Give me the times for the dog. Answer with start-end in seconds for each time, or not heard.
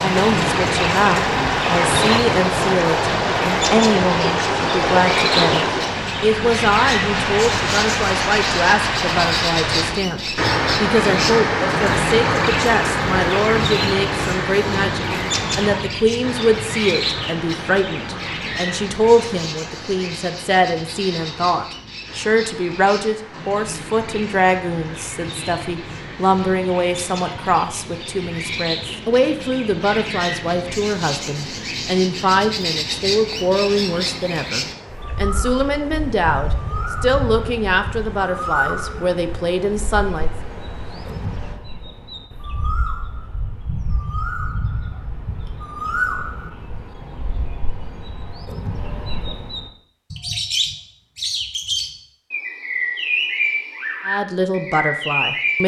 not heard.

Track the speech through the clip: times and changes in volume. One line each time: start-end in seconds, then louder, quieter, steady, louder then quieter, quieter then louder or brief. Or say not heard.
0.0-40.3 steady
54.0-55.6 brief.